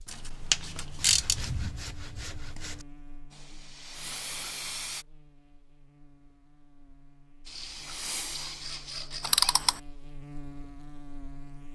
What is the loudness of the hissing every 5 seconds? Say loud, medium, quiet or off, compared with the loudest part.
loud, loud, off.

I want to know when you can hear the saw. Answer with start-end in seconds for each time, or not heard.
0.9-2.9, 7.5-9.7.